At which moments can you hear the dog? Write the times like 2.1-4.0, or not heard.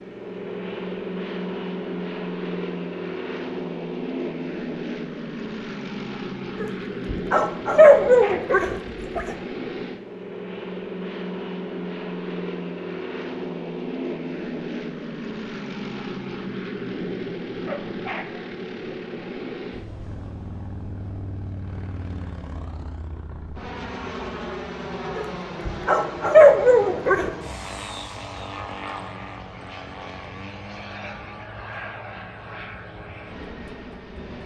6.6-9.3, 25.1-27.3.